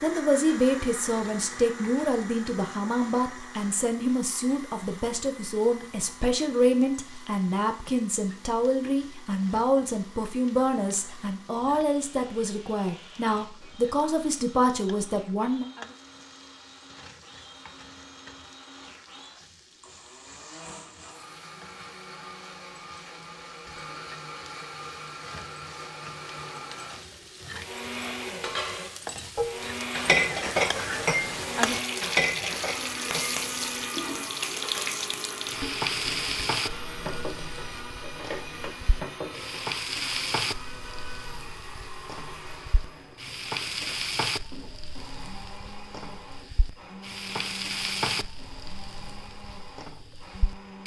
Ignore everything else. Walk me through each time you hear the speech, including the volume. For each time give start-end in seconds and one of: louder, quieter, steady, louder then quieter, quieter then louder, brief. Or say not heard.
0.0-15.7 steady.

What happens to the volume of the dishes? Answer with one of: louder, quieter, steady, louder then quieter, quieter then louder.
quieter.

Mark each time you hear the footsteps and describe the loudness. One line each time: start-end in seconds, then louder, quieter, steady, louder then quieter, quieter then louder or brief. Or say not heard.
not heard.